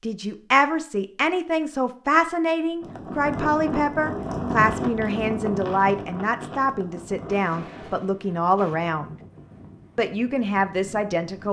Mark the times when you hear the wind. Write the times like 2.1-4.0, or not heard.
2.8-11.4.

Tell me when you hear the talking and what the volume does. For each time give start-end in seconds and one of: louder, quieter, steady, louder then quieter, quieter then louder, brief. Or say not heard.
0.0-9.2 steady
9.9-11.4 brief.